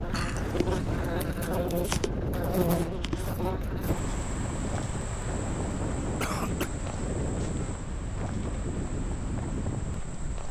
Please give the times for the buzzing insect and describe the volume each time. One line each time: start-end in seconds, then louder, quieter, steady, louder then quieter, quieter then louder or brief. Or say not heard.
0.0-10.4 quieter.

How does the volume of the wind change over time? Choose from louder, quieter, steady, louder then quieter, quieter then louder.
steady.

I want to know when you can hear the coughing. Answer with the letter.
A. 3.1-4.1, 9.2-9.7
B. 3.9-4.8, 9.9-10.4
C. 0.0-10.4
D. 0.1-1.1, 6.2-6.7
D.